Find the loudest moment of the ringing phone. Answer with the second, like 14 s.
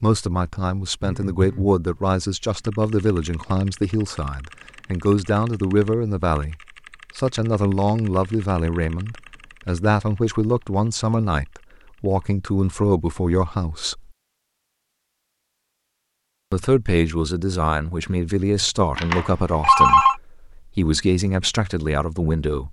20 s.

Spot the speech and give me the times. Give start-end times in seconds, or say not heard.
0.0-6.5, 7.2-14.1, 16.5-22.6.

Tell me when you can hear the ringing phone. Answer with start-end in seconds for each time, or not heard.
1.0-1.8, 18.9-20.1.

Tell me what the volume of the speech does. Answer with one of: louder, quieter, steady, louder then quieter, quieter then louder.
steady.